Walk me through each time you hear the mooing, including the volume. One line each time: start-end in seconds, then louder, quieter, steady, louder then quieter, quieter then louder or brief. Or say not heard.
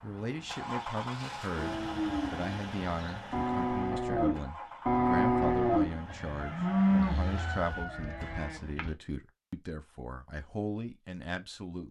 1.6-8.9 louder then quieter.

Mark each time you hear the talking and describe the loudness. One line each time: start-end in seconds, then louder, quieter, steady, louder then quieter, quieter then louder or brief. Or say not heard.
0.0-11.8 steady.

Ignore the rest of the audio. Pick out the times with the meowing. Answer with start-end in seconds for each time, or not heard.
not heard.